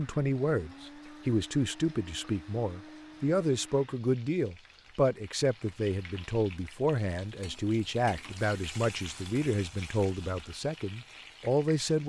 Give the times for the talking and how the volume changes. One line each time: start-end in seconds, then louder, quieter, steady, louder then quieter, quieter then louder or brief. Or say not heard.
0.0-12.0 steady.